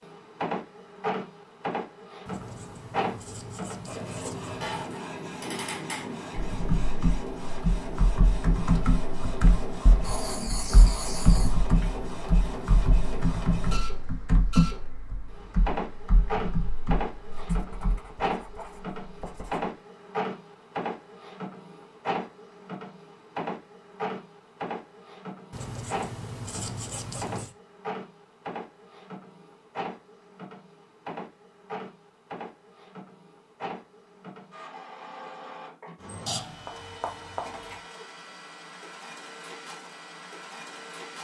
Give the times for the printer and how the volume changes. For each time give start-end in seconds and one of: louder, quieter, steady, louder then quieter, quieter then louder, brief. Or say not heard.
0.0-41.1 quieter.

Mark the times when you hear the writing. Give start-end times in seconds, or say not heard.
2.2-5.0, 10.0-11.6, 17.3-19.7, 25.5-27.6, 36.2-37.8.